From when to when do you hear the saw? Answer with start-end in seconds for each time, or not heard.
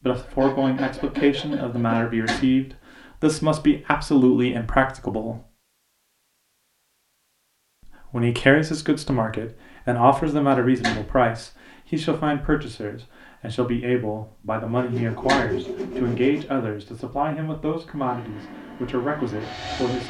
0.1-2.0, 14.8-16.4.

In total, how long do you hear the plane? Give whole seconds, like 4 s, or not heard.
2 s.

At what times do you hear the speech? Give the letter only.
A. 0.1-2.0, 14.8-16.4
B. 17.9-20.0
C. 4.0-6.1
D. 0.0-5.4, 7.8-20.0
D.